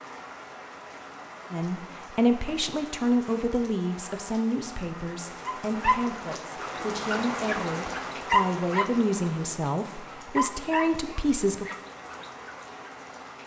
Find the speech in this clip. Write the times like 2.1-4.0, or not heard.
1.5-11.7.